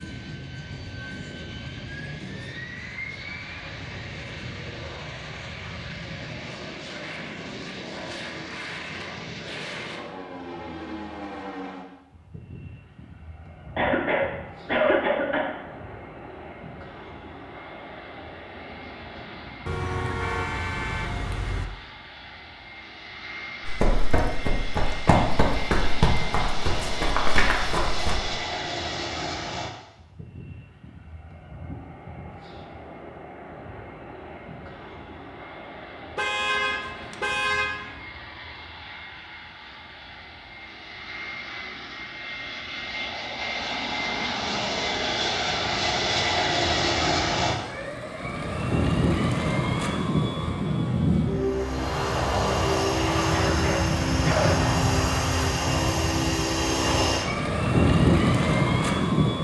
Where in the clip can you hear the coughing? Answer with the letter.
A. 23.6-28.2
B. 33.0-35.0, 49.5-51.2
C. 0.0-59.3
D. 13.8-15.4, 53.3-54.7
D.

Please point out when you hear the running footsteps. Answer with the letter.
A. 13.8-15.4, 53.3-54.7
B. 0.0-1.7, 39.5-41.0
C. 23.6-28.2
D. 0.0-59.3
C.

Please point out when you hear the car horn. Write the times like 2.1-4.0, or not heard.
19.6-21.6, 36.1-37.9.